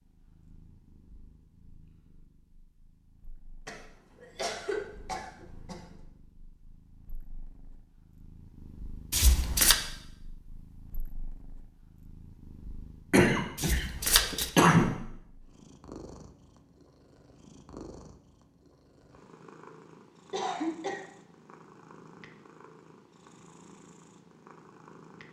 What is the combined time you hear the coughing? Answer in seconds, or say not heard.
5 s.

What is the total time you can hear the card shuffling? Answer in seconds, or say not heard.
2 s.